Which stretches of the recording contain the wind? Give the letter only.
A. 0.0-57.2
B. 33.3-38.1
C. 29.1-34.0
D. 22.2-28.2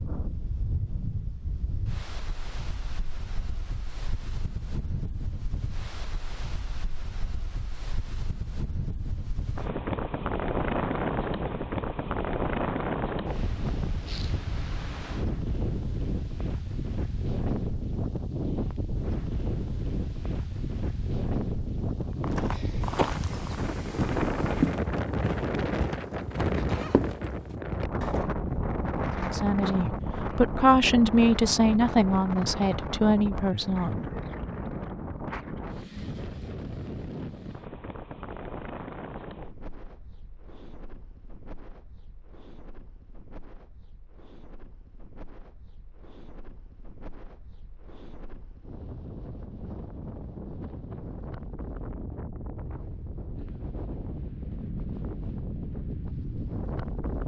A.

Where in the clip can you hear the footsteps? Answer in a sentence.
The footsteps can be heard from 22.2 to 28.2 s.